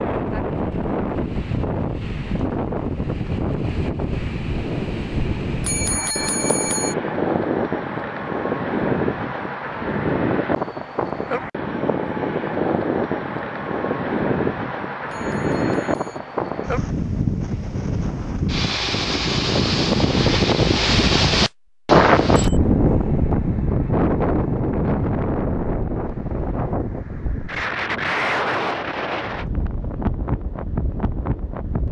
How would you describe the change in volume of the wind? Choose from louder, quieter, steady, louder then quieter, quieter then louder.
louder then quieter.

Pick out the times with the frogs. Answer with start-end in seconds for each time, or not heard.
not heard.